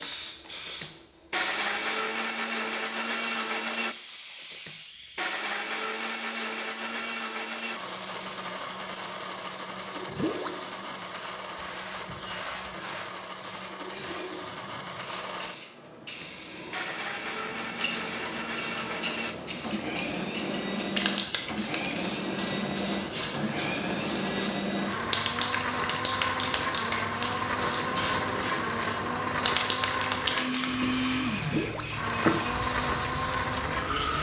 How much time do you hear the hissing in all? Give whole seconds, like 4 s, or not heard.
34 s.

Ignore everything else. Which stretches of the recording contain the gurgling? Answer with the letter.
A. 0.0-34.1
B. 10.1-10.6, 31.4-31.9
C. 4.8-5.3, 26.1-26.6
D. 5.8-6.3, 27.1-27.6
B.